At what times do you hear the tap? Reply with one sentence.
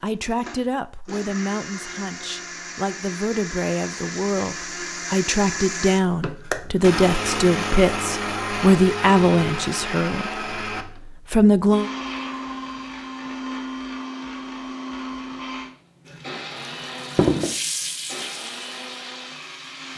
You can hear the tap from 16.1 to 19.9 s.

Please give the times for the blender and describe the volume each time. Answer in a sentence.
The blender can be heard from 0.0 to 19.9 s, getting louder then quieter.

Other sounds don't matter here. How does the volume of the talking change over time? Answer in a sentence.
The loudness of the talking goes up.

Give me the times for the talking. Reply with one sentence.
The talking can be heard from 0.0 to 11.9 s.